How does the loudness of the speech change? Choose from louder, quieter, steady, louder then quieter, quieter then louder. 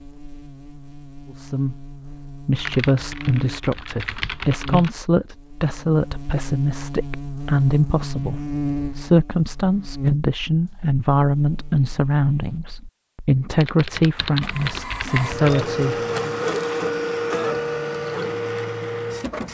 steady.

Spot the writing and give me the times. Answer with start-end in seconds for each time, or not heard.
not heard.